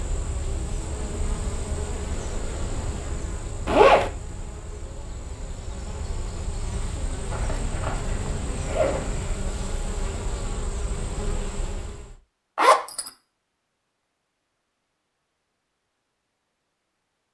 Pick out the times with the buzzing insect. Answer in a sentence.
You can hear the buzzing insect from 0.0 to 12.2 s.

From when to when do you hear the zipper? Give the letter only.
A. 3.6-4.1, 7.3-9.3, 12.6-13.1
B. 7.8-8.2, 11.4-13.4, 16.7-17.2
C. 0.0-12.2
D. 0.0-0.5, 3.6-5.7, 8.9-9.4
A.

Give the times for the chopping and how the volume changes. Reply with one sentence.
The chopping can't be heard in this clip.